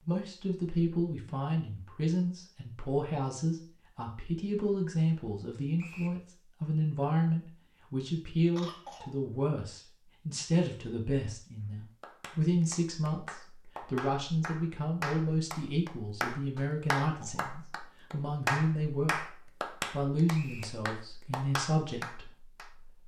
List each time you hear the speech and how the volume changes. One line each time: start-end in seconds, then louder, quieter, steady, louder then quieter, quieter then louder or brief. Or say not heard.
0.1-23.0 steady.